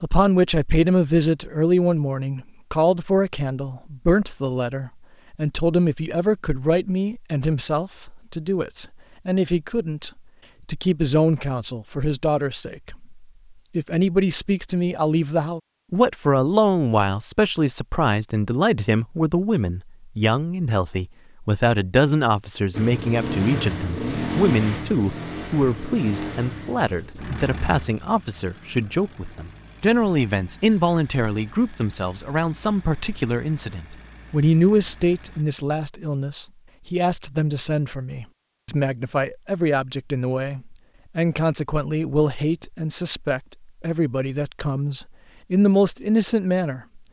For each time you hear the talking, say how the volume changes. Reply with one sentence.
You can hear the talking from 0.0 to 47.0 s, at a steady volume.